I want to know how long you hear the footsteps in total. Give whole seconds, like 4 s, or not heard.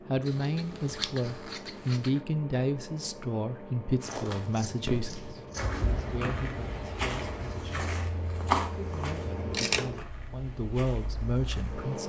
8 s.